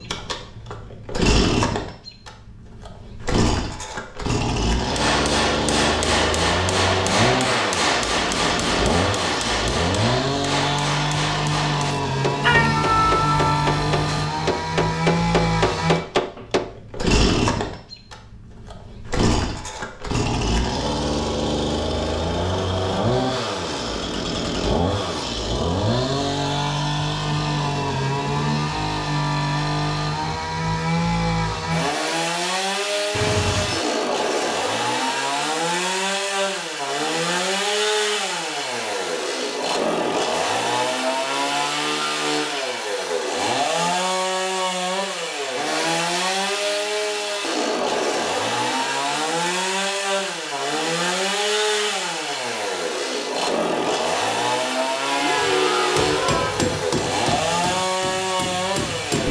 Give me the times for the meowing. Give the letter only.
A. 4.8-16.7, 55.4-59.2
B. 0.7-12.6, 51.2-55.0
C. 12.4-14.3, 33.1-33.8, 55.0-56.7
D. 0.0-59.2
C.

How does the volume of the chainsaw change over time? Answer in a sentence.
The loudness of the chainsaw stays about the same.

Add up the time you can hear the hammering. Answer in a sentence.
The hammering can be heard for 16 seconds in total.